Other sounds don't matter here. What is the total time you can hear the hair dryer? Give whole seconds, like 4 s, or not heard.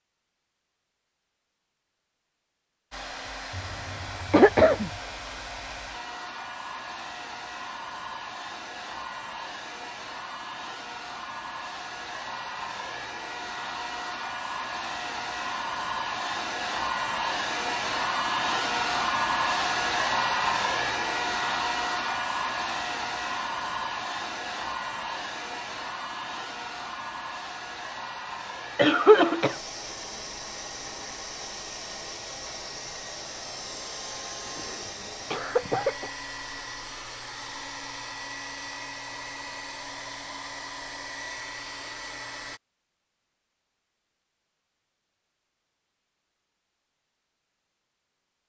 40 s.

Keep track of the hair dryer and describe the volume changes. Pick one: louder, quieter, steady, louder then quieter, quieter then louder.
louder then quieter.